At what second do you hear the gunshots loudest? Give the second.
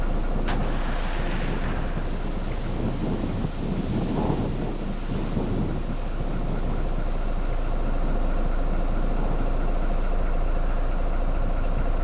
1 s.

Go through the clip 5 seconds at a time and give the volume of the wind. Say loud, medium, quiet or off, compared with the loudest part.
loud, loud, medium.